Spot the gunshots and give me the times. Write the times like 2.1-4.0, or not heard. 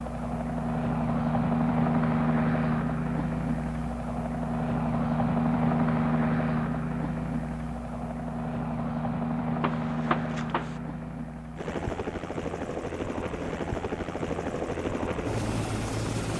9.6-10.8.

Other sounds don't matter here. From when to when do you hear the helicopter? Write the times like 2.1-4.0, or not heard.
0.0-16.3.